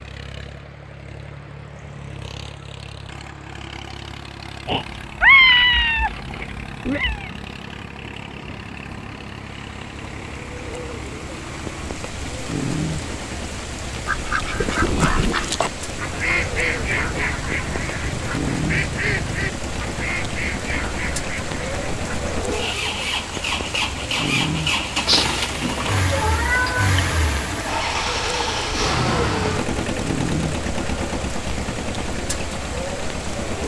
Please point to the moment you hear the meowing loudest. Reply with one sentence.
The loudest moment of the meowing is at 5 seconds.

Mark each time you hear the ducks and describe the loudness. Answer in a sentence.
The ducks can be heard from 14.0 to 22.4 s, getting quieter.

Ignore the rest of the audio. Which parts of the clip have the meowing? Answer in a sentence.
You can hear the meowing from 4.7 to 7.2 s and from 25.1 to 27.1 s.